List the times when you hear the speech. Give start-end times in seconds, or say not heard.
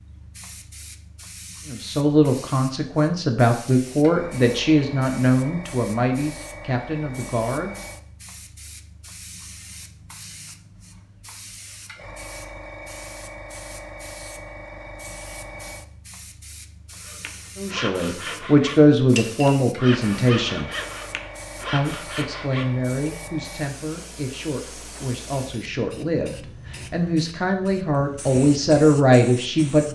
1.6-7.8, 17.6-20.7, 21.7-29.9.